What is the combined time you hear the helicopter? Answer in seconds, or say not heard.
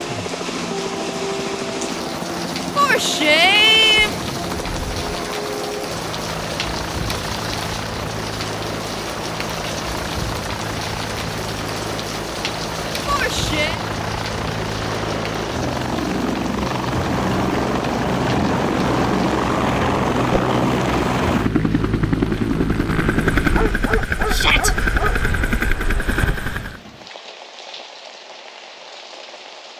27 s.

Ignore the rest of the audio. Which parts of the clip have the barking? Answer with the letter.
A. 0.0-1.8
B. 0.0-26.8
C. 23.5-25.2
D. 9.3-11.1
C.